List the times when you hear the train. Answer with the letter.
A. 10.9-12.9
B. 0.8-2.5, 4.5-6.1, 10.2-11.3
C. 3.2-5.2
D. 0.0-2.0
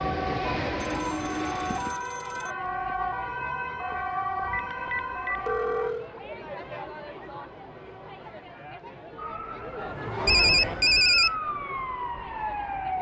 D.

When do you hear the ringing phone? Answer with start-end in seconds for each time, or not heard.
0.8-2.5, 4.5-6.1, 10.2-11.3.